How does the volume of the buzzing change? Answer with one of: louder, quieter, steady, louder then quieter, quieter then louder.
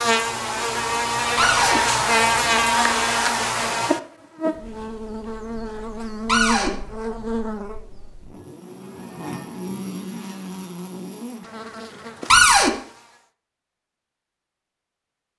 quieter.